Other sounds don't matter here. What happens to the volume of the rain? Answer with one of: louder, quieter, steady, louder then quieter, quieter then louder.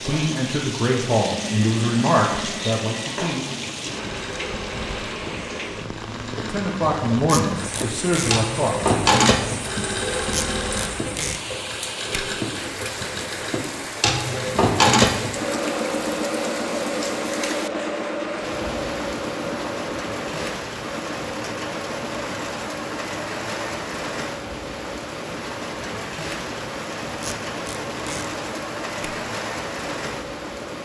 steady.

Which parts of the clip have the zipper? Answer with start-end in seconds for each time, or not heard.
not heard.